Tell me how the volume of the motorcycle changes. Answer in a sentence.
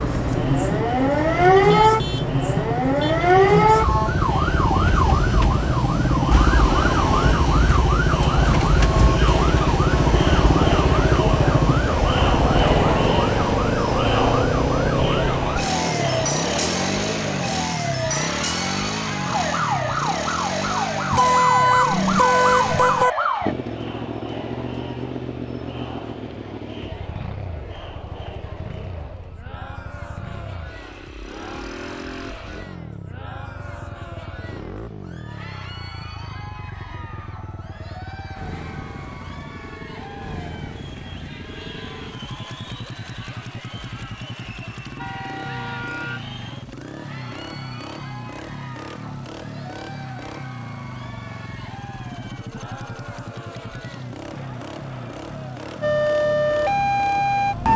The volume of the motorcycle goes down.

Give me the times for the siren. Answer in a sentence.
You can hear the siren from 0.0 to 23.6 s and from 55.8 to 57.7 s.